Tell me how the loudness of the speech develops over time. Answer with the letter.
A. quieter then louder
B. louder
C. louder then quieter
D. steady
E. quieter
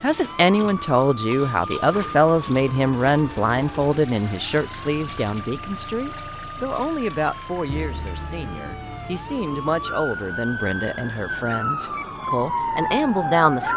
E.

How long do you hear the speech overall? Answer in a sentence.
The speech can be heard for 14 seconds in total.